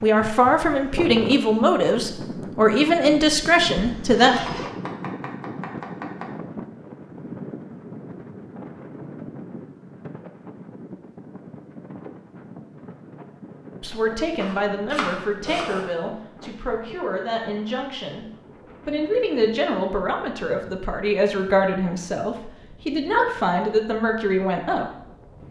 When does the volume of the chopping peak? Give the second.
15 s.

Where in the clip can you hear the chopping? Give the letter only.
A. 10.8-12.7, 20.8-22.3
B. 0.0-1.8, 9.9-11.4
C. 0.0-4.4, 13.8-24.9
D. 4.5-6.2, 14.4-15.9
D.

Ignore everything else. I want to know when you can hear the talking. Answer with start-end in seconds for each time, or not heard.
0.0-4.4, 13.8-24.9.